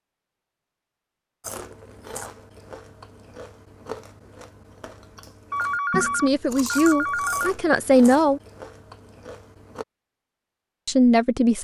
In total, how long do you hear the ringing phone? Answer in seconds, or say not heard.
2 s.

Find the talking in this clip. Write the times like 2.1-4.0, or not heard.
6.0-8.4, 10.8-11.5.